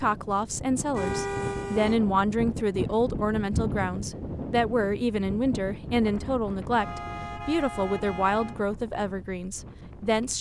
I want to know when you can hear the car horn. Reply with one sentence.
You can hear the car horn from 0.9 to 2.0 s and from 6.8 to 8.6 s.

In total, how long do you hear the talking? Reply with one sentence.
The talking can be heard for 10 seconds in total.